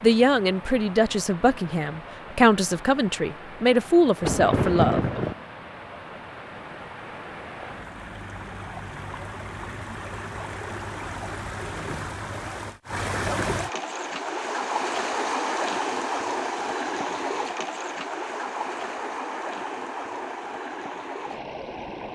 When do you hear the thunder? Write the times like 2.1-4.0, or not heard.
4.2-5.3.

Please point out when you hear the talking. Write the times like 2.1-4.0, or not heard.
0.0-5.2.